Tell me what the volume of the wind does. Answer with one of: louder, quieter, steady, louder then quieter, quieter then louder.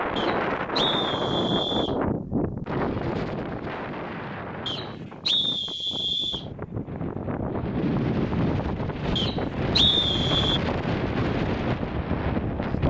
quieter then louder.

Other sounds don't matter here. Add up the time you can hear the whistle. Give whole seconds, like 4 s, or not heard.
5 s.